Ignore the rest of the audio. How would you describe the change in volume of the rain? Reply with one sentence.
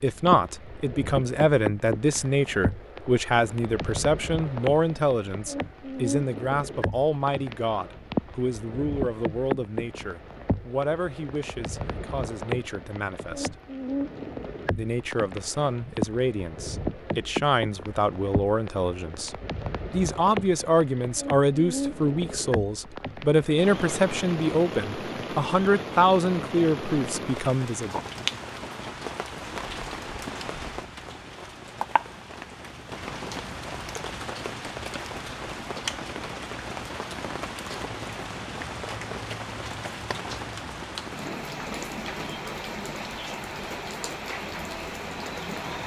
The loudness of the rain stays about the same.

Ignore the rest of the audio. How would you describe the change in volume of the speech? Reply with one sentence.
The volume of the speech goes down, then up.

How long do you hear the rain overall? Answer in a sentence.
You can hear the rain for 46 seconds altogether.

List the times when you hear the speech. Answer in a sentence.
You can hear the speech from 0.0 to 13.6 s and from 14.8 to 28.0 s.